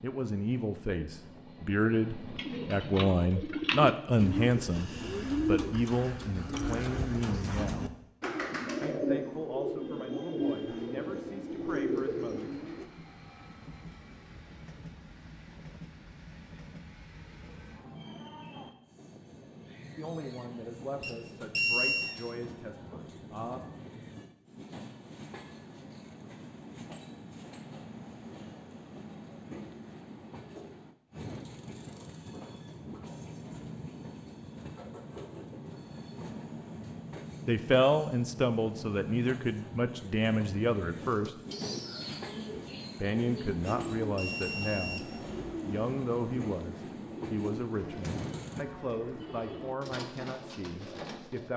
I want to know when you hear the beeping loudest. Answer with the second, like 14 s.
22 s.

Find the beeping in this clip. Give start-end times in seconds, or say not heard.
21.0-22.1, 43.6-45.0.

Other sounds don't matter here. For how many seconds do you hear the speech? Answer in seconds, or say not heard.
28 s.